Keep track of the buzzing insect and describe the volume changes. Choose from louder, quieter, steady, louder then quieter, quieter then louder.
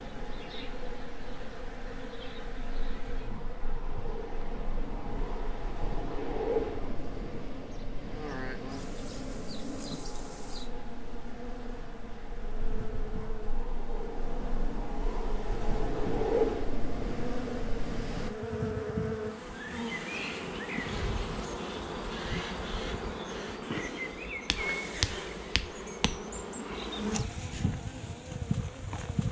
louder.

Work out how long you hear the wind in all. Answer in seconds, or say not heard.
18 s.